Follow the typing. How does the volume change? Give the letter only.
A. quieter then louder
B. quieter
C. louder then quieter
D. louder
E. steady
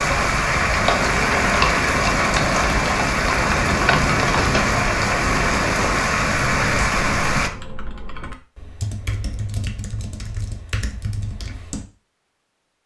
B.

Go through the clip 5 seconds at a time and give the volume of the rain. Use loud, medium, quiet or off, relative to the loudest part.
loud, loud, off.